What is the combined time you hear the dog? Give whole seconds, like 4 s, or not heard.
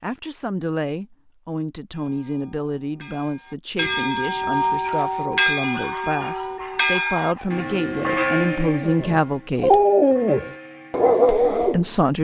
7 s.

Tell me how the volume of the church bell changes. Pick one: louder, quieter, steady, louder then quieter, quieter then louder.
louder then quieter.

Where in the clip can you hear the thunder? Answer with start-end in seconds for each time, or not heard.
not heard.